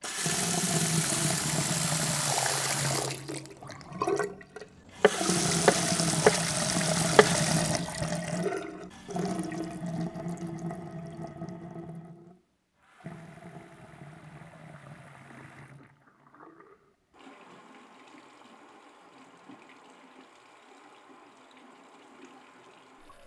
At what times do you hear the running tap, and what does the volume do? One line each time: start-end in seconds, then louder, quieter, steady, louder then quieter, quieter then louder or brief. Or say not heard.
0.0-23.2 quieter.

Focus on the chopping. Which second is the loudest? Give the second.
6 s.